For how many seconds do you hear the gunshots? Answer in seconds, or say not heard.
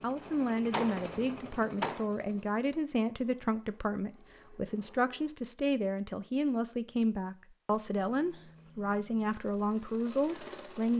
2 s.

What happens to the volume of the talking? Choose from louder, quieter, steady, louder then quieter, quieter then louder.
steady.